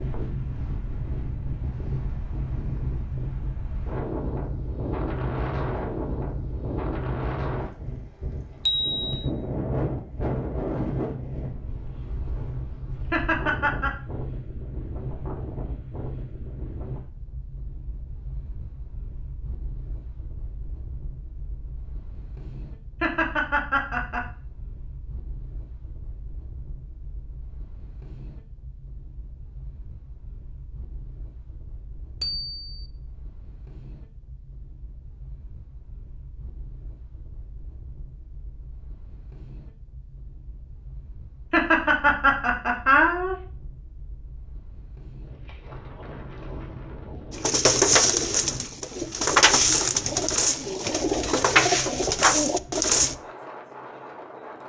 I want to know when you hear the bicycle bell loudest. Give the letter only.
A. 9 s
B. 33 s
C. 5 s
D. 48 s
A.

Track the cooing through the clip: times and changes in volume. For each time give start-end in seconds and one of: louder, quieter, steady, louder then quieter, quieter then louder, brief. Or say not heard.
47.3-53.1 steady.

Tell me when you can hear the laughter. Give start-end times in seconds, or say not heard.
13.1-13.9, 23.0-24.2, 41.5-43.4.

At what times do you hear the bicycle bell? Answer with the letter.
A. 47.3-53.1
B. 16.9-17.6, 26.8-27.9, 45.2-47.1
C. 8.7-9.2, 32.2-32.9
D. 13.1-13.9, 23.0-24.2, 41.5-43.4
C.